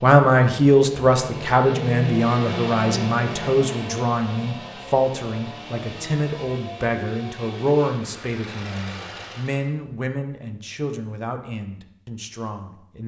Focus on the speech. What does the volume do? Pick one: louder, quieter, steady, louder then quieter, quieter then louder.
quieter.